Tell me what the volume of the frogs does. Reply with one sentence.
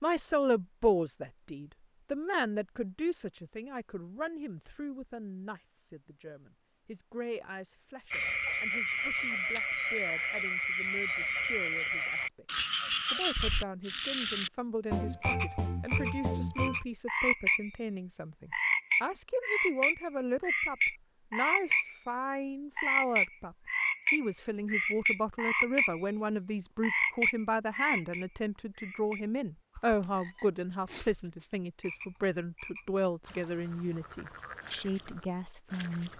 The volume of the frogs goes down.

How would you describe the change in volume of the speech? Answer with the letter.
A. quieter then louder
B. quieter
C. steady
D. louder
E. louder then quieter
A.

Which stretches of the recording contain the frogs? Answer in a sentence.
The frogs can be heard from 8.1 to 36.1 s.